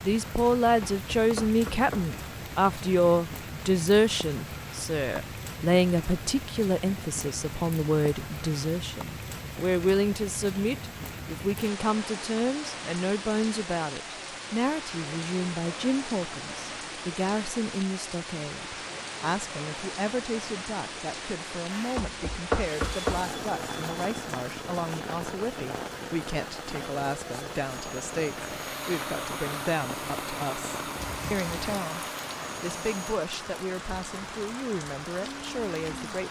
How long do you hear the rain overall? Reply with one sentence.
You can hear the rain for 36 seconds altogether.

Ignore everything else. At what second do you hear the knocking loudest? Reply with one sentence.
The volume of the knocking peaks at 23 seconds.